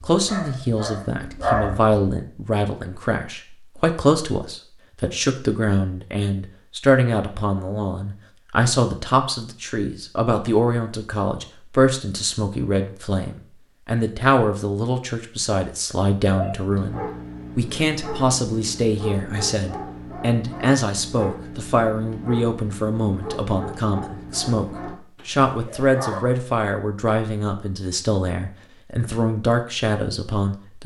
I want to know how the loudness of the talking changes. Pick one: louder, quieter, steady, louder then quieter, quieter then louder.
steady.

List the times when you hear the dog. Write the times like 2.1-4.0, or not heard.
0.1-1.9, 16.3-26.2.